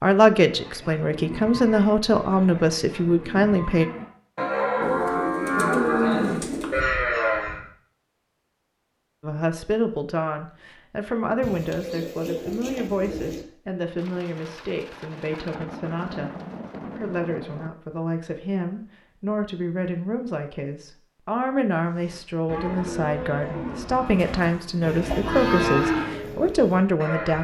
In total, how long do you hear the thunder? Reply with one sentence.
The thunder can be heard for 4 seconds in total.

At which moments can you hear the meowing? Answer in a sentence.
The meowing can't be heard in this clip.